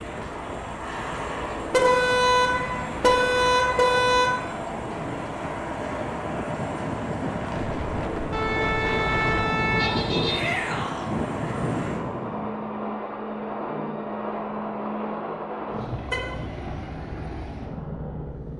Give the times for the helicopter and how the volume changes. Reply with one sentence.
You can hear the helicopter from 0.0 to 18.5 s, at a steady volume.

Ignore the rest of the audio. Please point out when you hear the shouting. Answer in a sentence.
You can hear the shouting from 10.2 to 11.1 s.